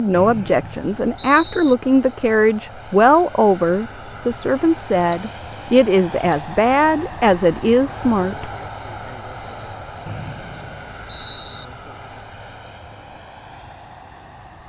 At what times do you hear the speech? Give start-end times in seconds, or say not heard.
0.0-8.5.